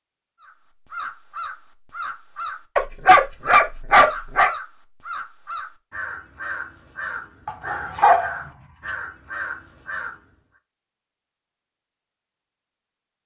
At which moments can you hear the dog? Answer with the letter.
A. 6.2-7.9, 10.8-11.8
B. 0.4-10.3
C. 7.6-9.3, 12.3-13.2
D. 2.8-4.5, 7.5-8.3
D.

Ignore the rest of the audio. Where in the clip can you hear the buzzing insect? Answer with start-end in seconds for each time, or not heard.
not heard.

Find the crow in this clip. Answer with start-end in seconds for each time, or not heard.
0.4-10.3.